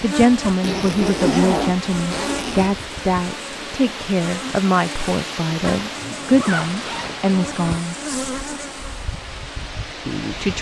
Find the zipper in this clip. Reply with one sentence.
You can hear the zipper from 0.6 to 2.7 s and from 5.8 to 7.8 s.